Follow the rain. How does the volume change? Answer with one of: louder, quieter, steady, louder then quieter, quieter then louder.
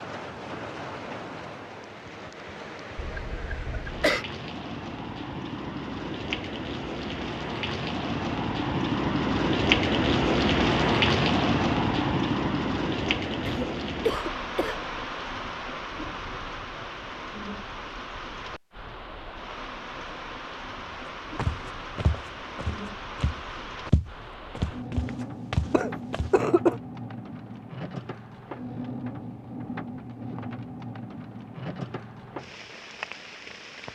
louder then quieter.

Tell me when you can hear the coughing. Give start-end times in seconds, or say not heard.
3.0-4.2, 13.4-14.8, 25.7-26.8.